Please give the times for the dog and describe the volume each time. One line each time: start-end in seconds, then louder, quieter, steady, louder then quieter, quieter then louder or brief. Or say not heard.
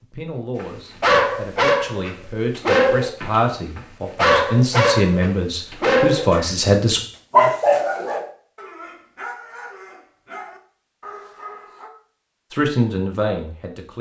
0.6-11.9 quieter.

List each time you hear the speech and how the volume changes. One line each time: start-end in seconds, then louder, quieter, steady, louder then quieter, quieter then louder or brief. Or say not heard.
0.0-7.0 louder
12.5-13.9 brief.